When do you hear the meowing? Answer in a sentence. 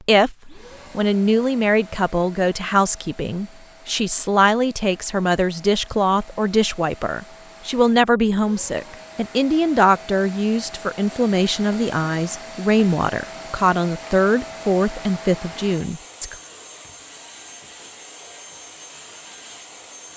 You can't hear the meowing here.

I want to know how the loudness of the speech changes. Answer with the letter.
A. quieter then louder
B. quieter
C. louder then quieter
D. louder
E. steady
E.